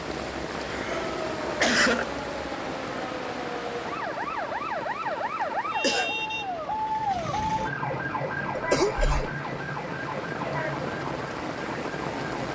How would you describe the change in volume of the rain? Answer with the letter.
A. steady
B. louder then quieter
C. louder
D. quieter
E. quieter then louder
E.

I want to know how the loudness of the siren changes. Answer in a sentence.
The volume of the siren goes up, then down.